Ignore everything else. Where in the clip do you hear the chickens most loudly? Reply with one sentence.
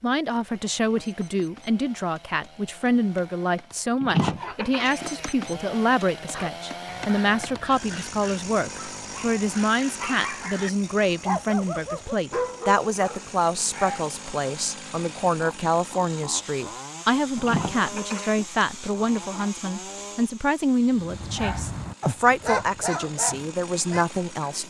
The volume of the chickens peaks at 4 seconds.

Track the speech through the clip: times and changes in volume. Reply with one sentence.
The speech can be heard from 0.0 to 24.6 s, at a steady volume.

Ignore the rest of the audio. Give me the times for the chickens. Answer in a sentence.
The chickens can be heard from 4.0 to 5.3 s and from 17.4 to 19.5 s.